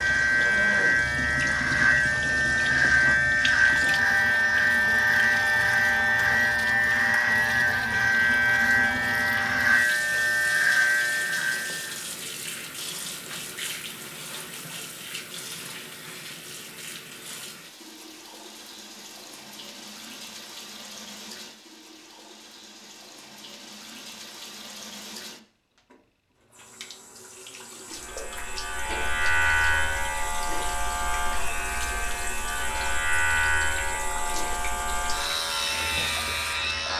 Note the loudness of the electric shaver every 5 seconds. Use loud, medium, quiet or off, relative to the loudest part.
loud, loud, loud, off, off, medium, medium, medium.